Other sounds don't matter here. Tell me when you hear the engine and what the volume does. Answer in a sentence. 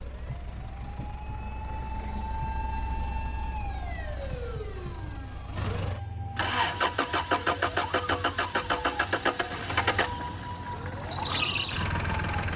The engine can be heard from 0.0 to 12.5 s, getting louder.